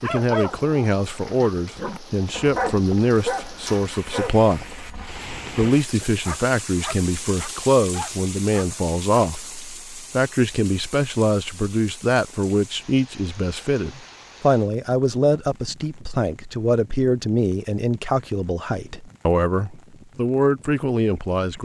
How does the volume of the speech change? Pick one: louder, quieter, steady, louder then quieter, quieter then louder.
steady.